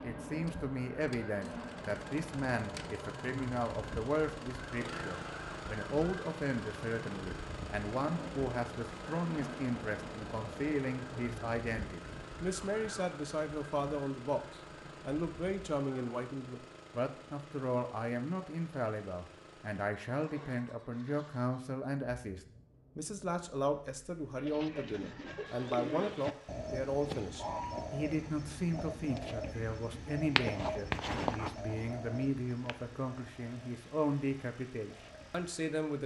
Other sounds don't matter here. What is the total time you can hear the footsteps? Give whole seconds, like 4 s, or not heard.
not heard.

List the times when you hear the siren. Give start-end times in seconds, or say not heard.
0.0-16.2.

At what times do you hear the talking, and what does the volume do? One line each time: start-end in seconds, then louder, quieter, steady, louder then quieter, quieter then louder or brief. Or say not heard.
0.0-36.0 steady.